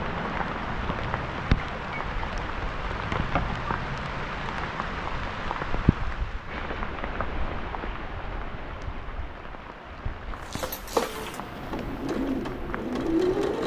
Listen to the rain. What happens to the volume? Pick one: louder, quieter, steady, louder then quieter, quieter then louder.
quieter.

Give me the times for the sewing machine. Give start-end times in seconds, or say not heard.
10.5-13.6.